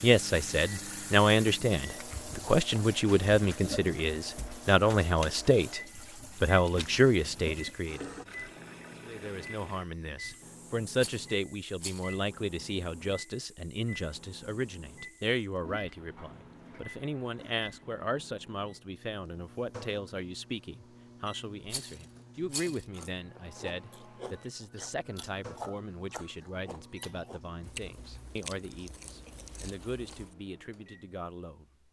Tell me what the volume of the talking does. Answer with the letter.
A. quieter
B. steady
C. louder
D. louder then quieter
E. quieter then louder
A.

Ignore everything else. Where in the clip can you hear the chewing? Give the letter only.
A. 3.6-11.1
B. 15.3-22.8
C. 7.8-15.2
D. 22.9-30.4
D.